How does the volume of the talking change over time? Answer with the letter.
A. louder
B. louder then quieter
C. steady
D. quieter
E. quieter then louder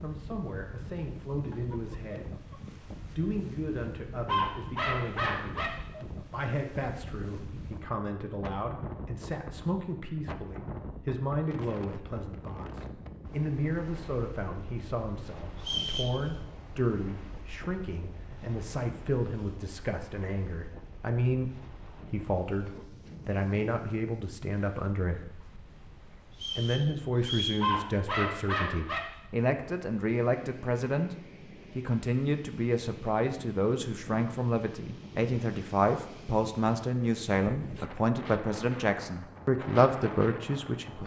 A.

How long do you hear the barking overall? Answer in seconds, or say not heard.
3 s.